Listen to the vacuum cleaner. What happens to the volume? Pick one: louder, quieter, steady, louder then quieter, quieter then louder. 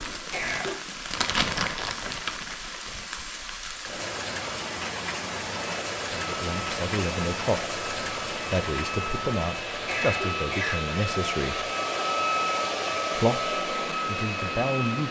louder.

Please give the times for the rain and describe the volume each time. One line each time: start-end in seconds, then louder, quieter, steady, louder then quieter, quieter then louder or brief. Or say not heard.
0.0-15.0 quieter.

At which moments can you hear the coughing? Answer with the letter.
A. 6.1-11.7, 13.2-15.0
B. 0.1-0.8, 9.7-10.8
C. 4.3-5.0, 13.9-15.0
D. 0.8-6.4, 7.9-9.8
B.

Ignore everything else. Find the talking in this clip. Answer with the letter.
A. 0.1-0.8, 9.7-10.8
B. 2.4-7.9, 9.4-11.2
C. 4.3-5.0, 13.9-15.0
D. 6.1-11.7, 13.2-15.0
D.